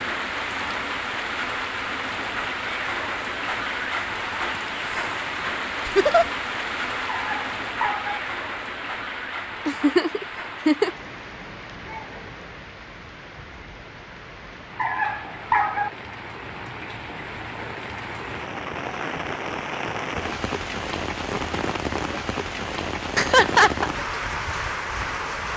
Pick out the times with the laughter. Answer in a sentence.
The laughter can be heard from 5.8 to 6.2 s, from 9.7 to 10.9 s and from 23.1 to 23.9 s.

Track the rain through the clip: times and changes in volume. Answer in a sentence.
You can hear the rain from 0.0 to 25.5 s, getting quieter then louder.